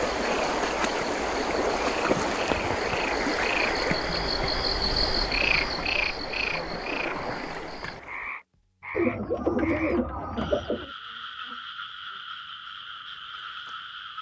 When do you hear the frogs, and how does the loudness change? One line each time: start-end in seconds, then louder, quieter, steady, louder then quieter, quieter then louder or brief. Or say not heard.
0.2-14.1 louder then quieter.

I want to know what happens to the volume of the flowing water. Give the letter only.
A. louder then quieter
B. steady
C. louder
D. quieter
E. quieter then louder
D.